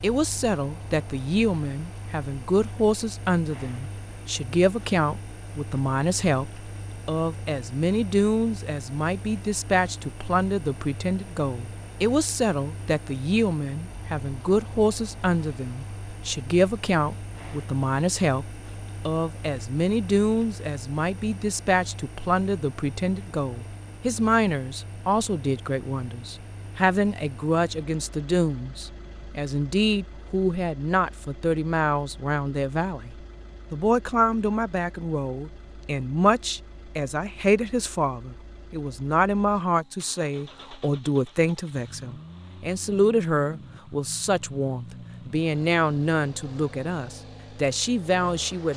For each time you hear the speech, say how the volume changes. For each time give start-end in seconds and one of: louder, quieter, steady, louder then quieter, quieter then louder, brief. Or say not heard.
0.0-18.4 steady
19.1-48.7 steady.